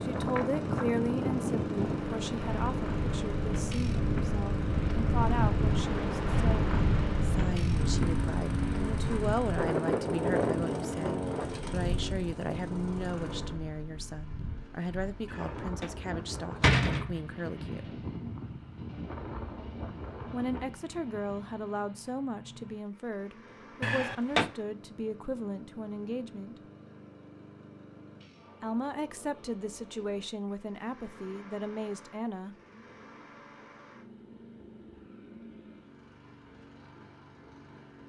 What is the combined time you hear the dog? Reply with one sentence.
The dog can't be heard in this clip.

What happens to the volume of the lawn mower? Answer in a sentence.
The volume of the lawn mower goes down.